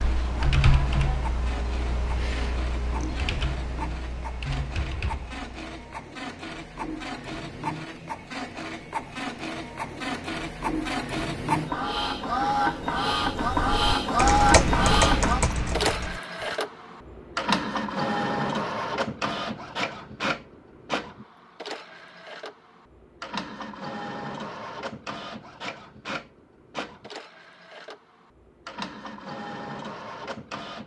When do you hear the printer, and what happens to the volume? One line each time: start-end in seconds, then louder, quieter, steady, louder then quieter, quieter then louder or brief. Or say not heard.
0.0-30.8 louder then quieter.